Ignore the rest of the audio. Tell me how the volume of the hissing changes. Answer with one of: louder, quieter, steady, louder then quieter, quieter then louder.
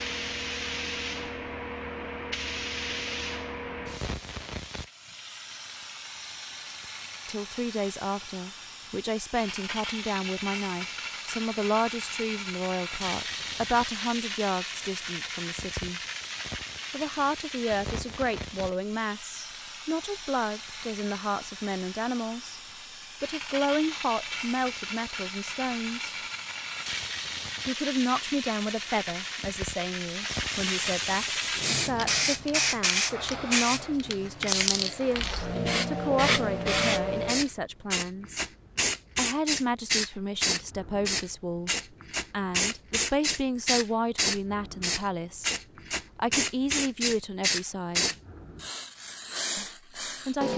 louder.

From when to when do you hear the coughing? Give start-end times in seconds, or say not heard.
not heard.